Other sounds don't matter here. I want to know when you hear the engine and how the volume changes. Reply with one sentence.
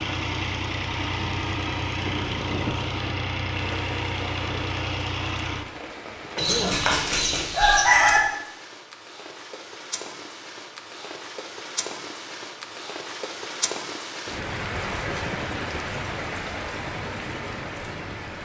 The engine can be heard from 0.0 to 6.8 s, at a steady volume.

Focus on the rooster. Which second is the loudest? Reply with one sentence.
The loudest moment of the rooster is at 8 seconds.